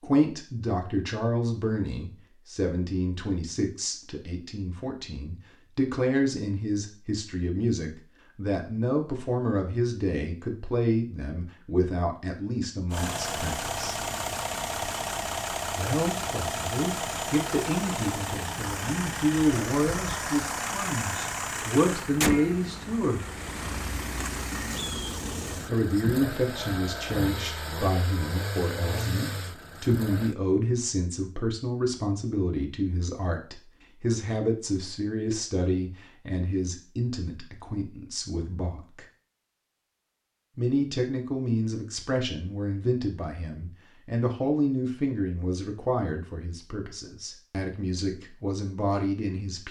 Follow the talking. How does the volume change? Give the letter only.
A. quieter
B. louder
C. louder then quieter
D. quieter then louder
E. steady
E.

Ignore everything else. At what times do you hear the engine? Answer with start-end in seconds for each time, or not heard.
12.9-30.4.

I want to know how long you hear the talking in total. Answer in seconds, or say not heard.
44 s.